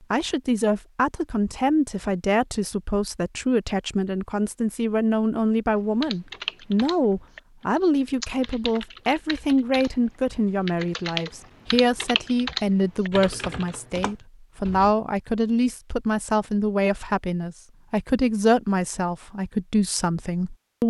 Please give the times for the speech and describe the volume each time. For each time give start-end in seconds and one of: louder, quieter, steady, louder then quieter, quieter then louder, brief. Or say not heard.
0.1-20.8 steady.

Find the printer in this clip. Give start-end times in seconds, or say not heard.
not heard.